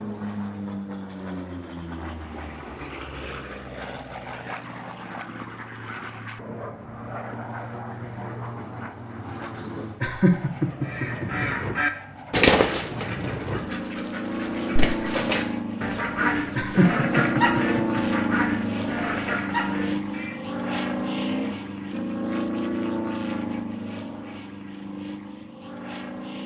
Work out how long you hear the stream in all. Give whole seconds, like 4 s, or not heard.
not heard.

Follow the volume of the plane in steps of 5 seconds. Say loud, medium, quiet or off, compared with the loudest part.
medium, medium, medium, loud, loud, medium.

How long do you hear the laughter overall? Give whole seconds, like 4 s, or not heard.
3 s.